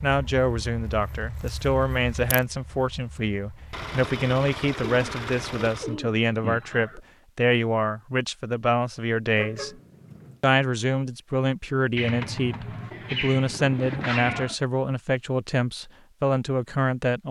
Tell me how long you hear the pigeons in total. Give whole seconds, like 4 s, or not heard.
5 s.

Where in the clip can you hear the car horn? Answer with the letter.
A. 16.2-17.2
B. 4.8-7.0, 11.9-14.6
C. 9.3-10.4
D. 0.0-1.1
C.